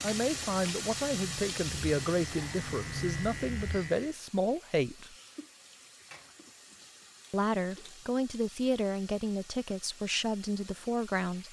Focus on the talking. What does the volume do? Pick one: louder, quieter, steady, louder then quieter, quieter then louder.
steady.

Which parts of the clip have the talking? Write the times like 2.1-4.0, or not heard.
0.0-5.2, 7.3-11.4.